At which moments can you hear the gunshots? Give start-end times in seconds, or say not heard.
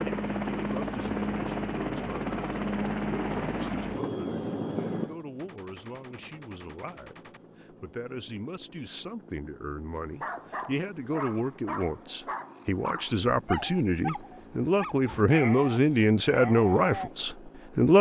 5.3-7.4.